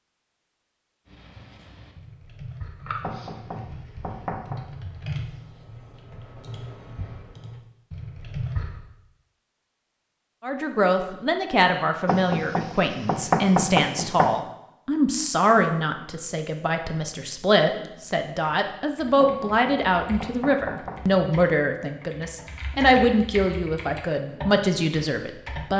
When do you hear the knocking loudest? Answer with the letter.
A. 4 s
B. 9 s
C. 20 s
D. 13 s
D.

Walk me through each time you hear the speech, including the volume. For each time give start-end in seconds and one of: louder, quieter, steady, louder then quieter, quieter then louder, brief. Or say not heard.
10.4-25.7 steady.